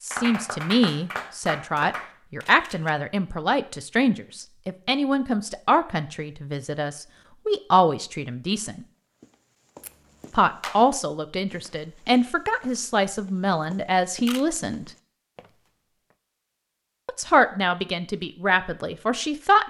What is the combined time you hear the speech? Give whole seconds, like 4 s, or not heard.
16 s.